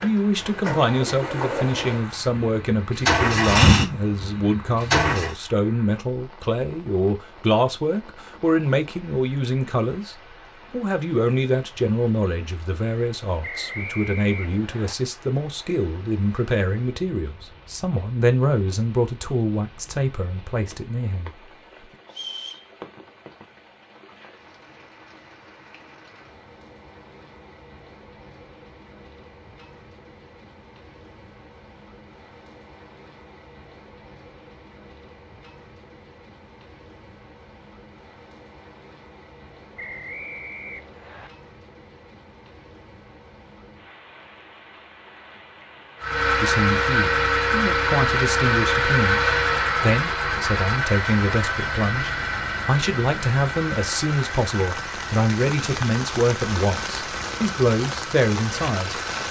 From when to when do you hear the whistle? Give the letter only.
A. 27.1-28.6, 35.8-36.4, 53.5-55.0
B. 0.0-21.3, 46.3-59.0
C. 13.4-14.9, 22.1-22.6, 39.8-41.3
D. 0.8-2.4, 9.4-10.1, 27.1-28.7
C.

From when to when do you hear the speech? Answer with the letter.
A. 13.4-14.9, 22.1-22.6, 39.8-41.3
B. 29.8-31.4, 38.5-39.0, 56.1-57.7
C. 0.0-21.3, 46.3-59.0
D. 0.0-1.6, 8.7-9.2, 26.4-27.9
C.